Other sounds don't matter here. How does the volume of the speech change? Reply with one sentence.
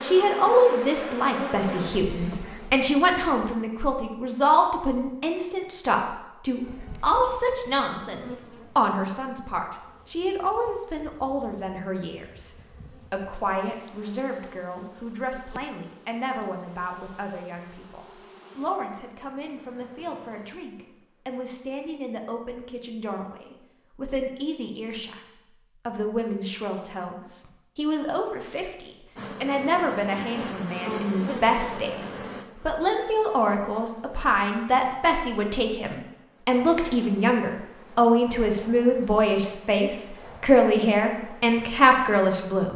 The loudness of the speech goes down, then up.